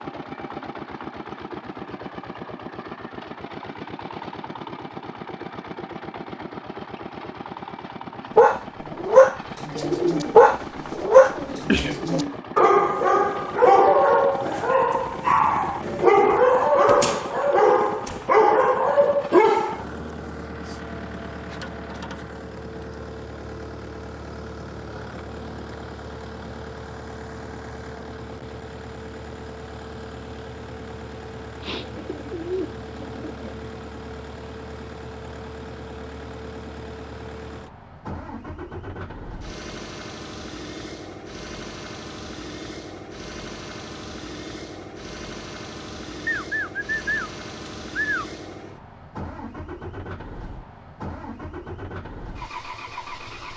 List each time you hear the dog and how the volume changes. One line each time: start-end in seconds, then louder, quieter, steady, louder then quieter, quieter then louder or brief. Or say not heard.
8.3-19.9 steady.